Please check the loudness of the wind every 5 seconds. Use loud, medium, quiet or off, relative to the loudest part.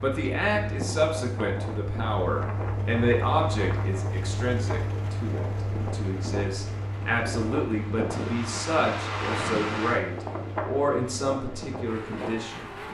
medium, loud, loud.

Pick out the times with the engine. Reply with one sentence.
The engine can be heard from 0.0 to 12.8 s.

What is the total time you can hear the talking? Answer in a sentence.
The talking can be heard for 13 seconds in total.